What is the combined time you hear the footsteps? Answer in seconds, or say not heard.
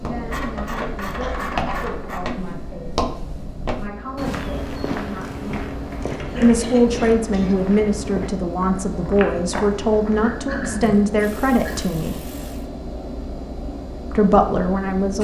11 s.